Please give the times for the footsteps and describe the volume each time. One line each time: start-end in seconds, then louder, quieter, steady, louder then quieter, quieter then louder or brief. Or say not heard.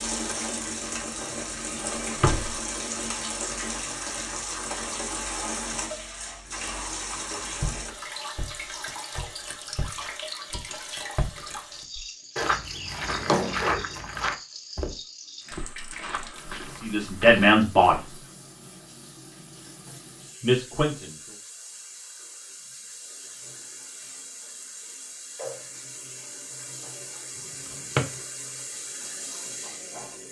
7.6-18.3 louder then quieter.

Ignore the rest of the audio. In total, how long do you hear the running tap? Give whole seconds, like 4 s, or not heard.
30 s.